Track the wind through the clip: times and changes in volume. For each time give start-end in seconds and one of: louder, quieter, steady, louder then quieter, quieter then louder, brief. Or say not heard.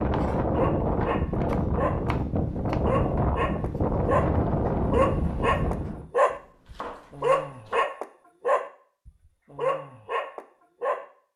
0.0-6.1 steady.